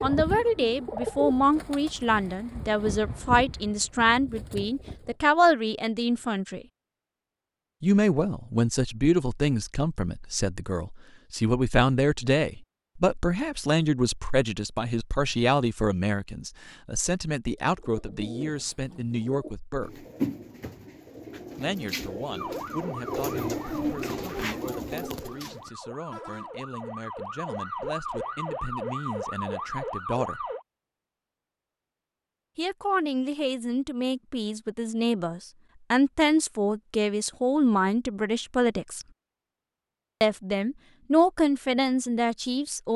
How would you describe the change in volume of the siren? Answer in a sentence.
The loudness of the siren goes down, then up.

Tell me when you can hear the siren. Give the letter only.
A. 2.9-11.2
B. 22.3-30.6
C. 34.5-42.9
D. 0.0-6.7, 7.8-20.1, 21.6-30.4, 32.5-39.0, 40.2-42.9
B.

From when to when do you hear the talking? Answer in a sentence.
You can hear the talking from 0.0 to 6.7 s, from 7.8 to 20.1 s, from 21.6 to 30.4 s, from 32.5 to 39.0 s and from 40.2 to 42.9 s.